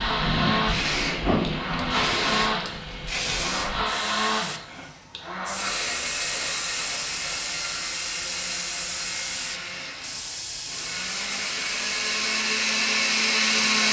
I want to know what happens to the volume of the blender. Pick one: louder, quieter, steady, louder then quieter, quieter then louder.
quieter then louder.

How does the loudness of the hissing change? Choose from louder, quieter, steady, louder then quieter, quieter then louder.
quieter.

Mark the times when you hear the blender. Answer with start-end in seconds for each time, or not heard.
0.0-13.8.